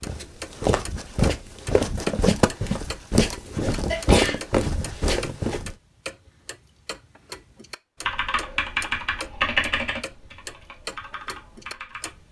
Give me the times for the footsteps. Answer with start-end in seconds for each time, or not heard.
0.0-5.8.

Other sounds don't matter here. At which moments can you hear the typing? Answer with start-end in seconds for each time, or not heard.
8.1-12.2.